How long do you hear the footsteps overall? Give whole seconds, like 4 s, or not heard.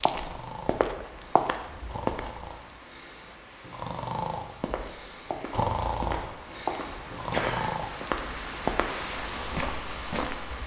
8 s.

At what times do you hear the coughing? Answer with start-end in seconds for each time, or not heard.
7.3-7.9.